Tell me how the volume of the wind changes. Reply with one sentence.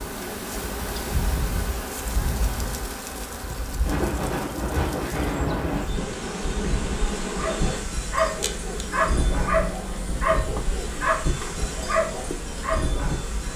The volume of the wind goes up, then down.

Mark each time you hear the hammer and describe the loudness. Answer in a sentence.
The hammer can't be heard in this clip.